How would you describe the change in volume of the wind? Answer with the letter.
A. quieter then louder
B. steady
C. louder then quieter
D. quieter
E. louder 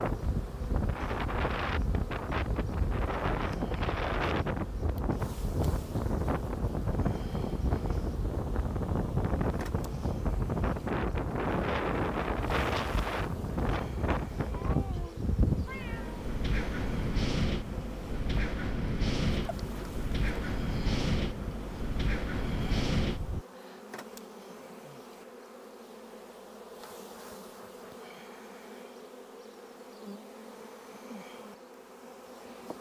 B.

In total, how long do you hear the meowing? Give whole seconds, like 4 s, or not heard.
2 s.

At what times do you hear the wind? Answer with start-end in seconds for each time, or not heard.
0.0-23.4.